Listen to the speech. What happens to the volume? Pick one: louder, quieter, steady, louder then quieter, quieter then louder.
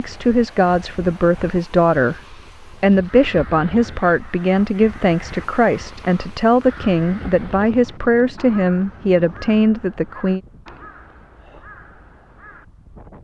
steady.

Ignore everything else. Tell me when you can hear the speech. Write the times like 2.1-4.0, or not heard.
0.0-10.4.